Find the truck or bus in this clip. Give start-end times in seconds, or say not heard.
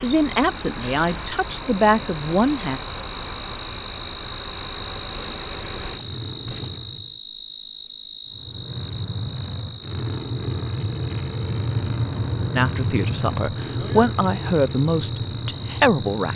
0.0-7.2, 8.3-16.3.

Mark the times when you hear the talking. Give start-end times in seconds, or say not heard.
0.0-2.8, 12.6-16.3.